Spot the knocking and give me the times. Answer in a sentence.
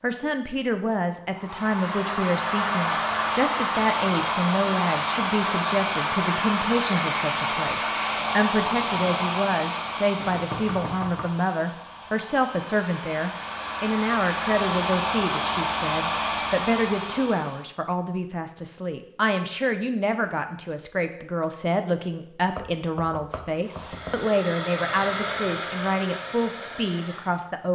You can hear the knocking from 10.2 to 11.3 s and from 22.6 to 24.2 s.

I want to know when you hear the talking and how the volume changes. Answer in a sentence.
The talking can be heard from 0.0 to 27.6 s, at a steady volume.